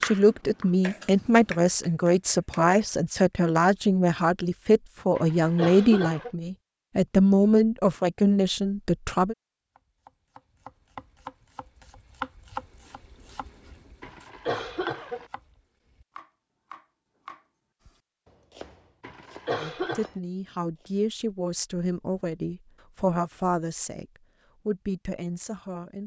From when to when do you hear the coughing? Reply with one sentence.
The coughing can be heard from 5.2 to 6.3 s, from 14.0 to 15.3 s and from 19.0 to 20.1 s.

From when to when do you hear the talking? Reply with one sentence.
You can hear the talking from 0.0 to 9.3 s, from 19.6 to 24.1 s and from 24.6 to 26.0 s.